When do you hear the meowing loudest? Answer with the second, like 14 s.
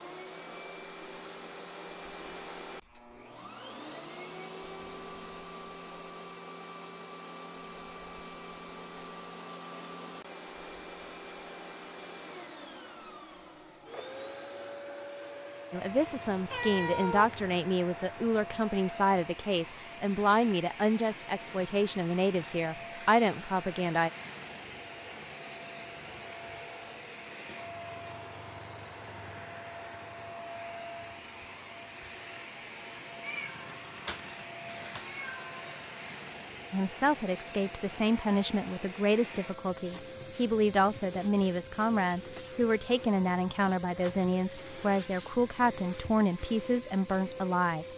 17 s.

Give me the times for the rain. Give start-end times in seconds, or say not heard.
not heard.